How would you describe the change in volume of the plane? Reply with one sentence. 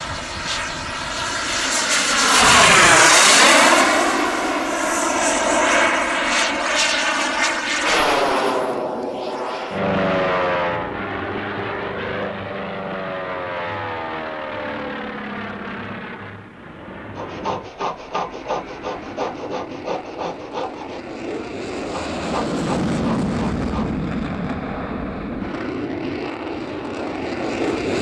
The loudness of the plane goes down, then up.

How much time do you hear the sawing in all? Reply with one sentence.
The sawing can be heard for 7 seconds in total.